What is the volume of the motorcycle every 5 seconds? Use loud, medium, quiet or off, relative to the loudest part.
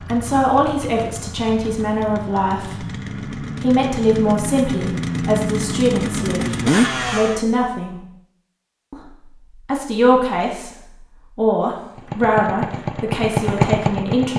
medium, loud, loud.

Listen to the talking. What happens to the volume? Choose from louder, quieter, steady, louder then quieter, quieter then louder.
steady.